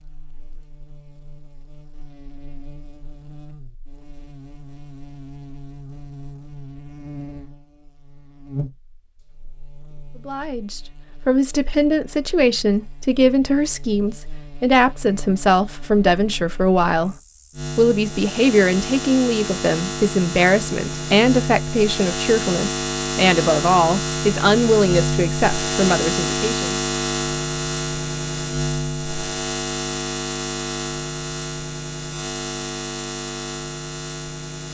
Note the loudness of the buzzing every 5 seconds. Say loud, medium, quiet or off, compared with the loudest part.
quiet, quiet, quiet, medium, loud, loud, medium.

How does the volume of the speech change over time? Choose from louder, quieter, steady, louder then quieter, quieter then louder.
steady.